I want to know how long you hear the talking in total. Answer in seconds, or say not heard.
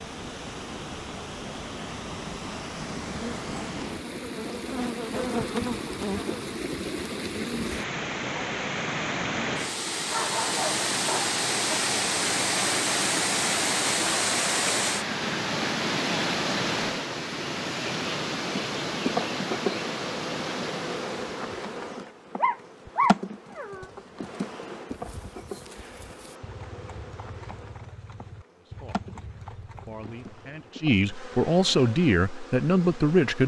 5 s.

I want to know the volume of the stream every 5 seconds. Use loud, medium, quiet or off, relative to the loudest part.
medium, medium, loud, loud, medium, off, off.